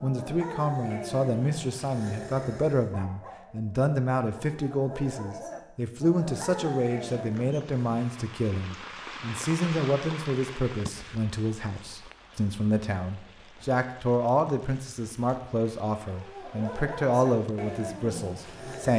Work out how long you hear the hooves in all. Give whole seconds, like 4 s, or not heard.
not heard.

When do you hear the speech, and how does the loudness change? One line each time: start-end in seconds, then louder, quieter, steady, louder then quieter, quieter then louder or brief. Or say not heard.
0.0-18.9 steady.